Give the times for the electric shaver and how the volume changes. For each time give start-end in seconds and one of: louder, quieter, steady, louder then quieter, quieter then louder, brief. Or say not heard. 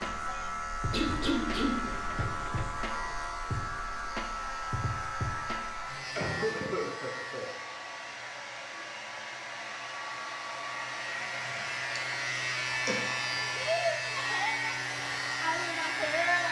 0.0-16.4 quieter then louder.